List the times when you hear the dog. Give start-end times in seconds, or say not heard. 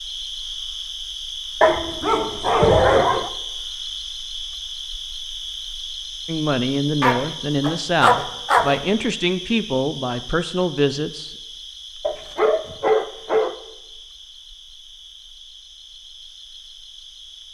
1.6-3.3, 7.0-8.8, 12.0-13.6.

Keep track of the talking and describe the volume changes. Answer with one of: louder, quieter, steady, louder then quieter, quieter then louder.
steady.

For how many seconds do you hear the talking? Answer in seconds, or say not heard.
5 s.